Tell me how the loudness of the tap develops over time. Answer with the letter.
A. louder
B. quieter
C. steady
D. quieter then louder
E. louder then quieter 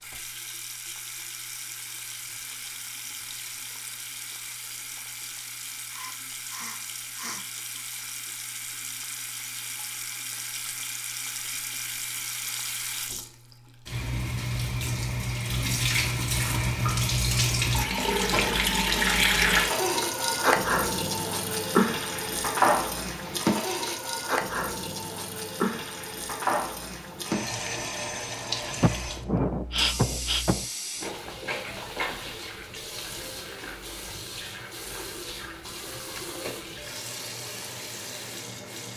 E.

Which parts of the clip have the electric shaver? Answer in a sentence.
You can't hear the electric shaver here.